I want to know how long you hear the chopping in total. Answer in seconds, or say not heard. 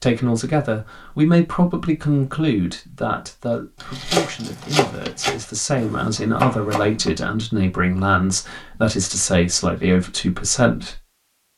3 s.